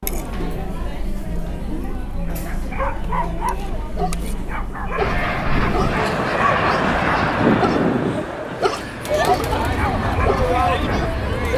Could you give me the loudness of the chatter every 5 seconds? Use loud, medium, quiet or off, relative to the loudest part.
medium, loud, loud.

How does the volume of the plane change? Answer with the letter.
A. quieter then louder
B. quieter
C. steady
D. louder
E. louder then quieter
A.